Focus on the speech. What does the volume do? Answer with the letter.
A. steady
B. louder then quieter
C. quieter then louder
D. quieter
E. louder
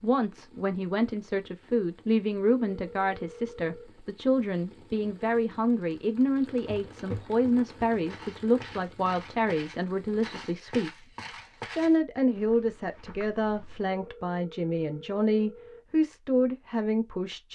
A.